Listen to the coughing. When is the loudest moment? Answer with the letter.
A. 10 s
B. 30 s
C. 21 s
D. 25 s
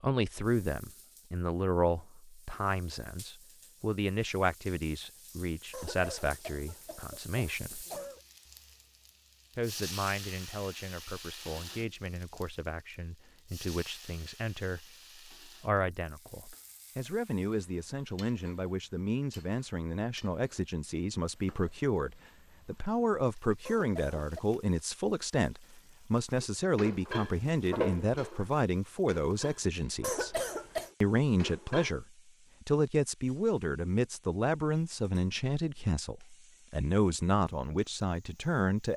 B.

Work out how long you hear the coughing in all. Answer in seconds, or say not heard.
4 s.